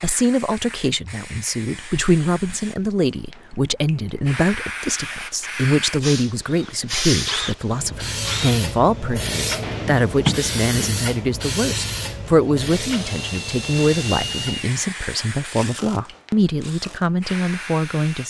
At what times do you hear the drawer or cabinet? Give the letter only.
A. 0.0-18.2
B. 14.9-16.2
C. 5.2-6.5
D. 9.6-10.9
D.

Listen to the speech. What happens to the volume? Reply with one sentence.
The loudness of the speech stays about the same.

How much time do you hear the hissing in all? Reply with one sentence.
You can hear the hissing for 18 seconds altogether.